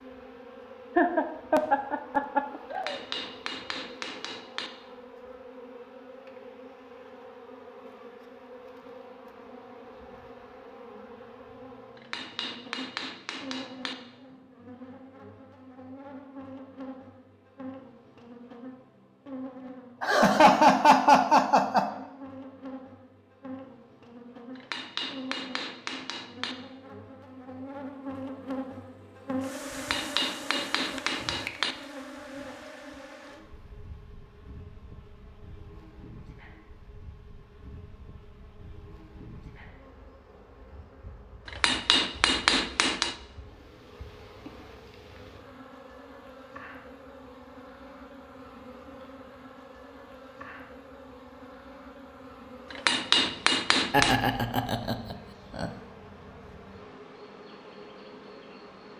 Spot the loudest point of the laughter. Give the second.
21 s.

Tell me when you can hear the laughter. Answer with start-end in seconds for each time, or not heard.
0.9-3.0, 20.0-21.9, 53.9-55.7.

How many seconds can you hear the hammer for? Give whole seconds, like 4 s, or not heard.
11 s.